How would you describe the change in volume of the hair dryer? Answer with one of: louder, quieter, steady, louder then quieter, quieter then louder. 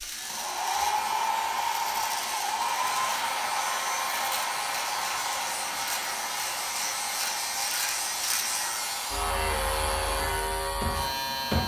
quieter.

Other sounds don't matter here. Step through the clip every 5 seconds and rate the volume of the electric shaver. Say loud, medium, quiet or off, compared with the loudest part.
medium, loud, loud.